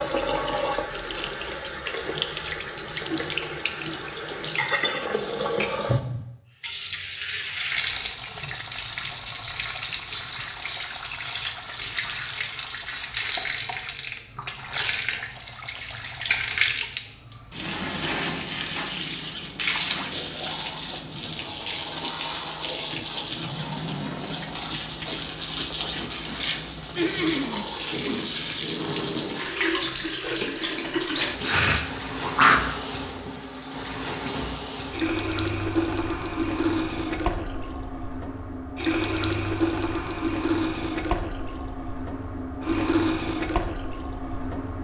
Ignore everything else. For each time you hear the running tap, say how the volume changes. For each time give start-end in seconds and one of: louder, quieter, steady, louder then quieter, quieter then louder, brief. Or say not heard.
0.0-44.7 steady.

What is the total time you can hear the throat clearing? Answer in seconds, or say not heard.
3 s.